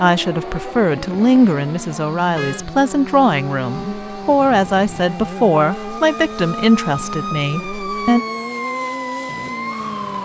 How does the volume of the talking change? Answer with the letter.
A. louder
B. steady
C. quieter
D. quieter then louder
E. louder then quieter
B.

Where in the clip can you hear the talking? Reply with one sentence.
The talking can be heard from 0.0 to 8.2 s.